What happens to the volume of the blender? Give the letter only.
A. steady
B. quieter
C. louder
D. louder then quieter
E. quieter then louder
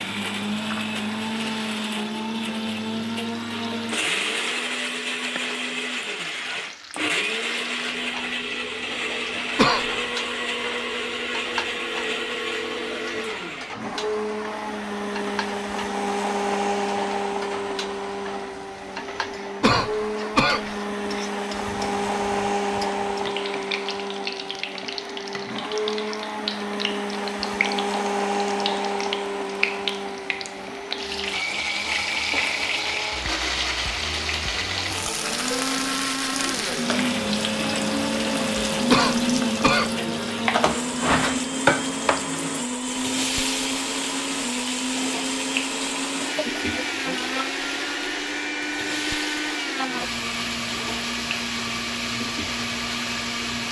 A.